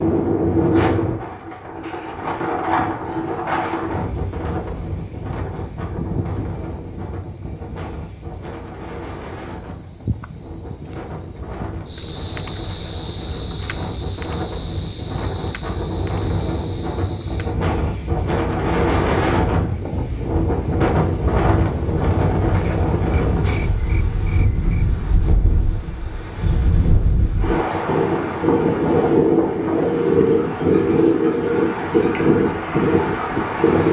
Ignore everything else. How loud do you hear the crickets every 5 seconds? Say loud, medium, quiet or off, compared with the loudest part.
medium, loud, loud, medium, quiet, quiet, quiet.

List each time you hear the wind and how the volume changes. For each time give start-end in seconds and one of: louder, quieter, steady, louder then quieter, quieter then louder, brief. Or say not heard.
0.0-33.8 quieter then louder.